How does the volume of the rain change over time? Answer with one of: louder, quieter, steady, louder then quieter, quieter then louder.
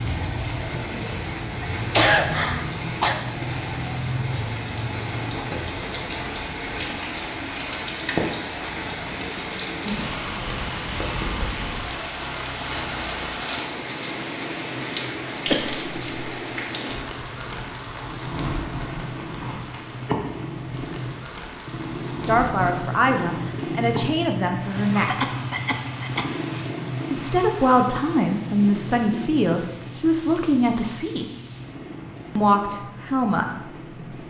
quieter.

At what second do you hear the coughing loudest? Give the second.
2 s.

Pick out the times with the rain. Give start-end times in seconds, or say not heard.
0.0-34.2.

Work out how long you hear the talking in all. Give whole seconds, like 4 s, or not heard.
8 s.